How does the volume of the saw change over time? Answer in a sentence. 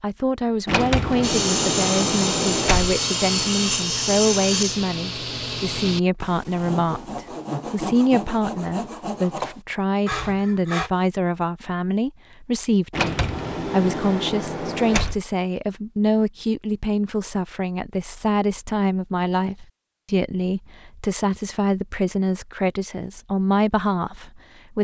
The loudness of the saw goes down.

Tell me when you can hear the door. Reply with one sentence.
You can hear the door from 0.7 to 3.0 s and from 12.9 to 15.2 s.